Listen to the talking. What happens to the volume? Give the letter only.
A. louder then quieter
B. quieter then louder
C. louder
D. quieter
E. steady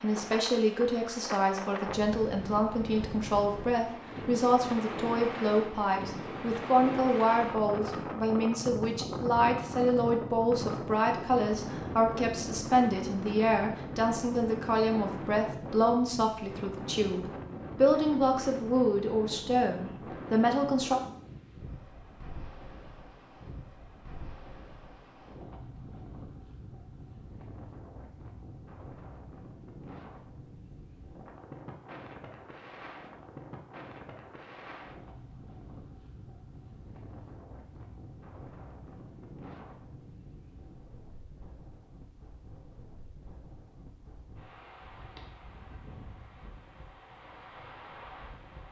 E.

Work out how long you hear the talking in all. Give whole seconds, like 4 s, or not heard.
21 s.